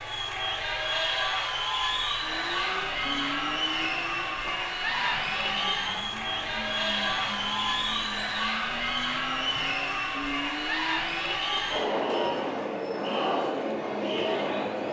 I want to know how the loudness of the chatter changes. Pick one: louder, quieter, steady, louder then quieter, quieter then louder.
steady.